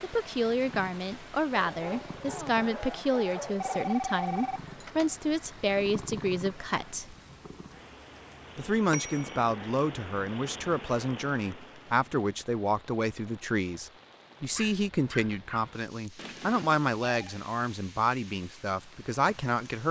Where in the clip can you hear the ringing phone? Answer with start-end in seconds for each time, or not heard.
3.5-5.1, 8.9-9.4, 16.1-17.4.